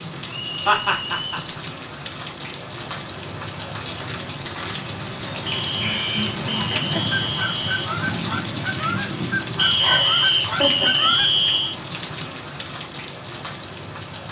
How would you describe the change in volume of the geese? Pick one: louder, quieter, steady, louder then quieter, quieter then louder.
steady.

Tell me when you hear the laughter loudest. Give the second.
1 s.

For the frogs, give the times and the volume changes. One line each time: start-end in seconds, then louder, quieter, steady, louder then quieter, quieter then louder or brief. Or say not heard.
not heard.